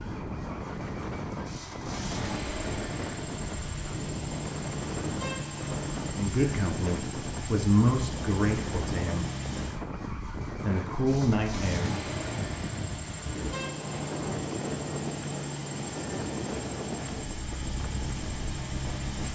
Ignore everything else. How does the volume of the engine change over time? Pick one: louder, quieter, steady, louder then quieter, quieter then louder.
steady.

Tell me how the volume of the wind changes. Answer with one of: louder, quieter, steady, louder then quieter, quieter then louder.
steady.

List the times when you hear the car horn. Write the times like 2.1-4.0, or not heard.
5.0-6.2, 13.2-14.2.